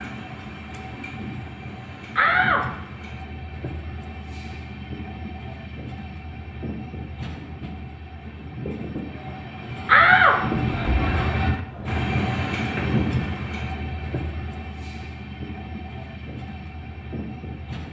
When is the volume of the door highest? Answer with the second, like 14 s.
10 s.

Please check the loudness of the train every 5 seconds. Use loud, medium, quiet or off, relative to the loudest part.
medium, medium, loud, medium.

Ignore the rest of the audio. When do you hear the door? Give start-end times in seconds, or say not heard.
2.1-2.6, 9.8-11.6.